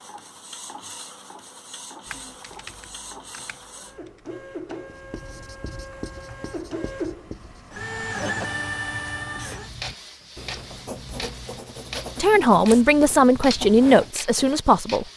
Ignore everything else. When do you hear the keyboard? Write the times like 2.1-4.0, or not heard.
2.0-4.2.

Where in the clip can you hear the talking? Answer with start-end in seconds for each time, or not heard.
12.2-15.1.